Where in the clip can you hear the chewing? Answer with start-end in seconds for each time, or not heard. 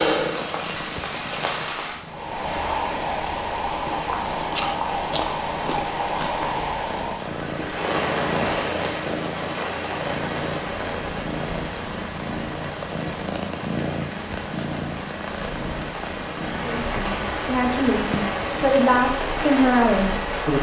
4.3-6.4.